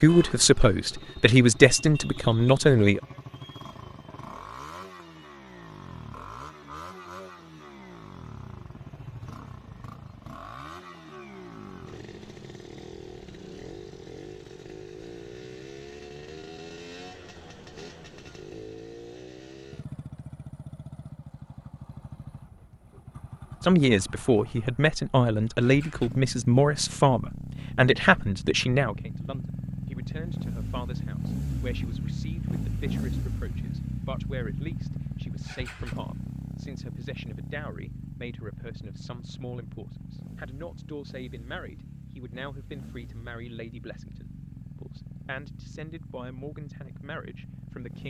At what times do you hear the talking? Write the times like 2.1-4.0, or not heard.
0.0-3.0, 23.6-48.0.